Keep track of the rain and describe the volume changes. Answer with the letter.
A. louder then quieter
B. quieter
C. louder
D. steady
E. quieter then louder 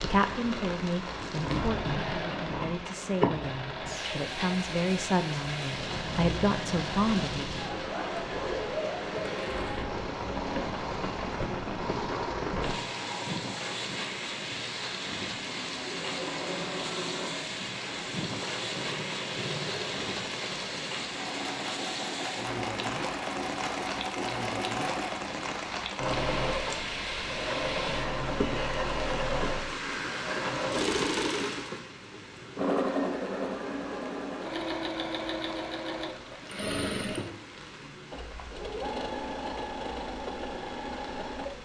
B.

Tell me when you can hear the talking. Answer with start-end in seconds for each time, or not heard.
0.0-7.5.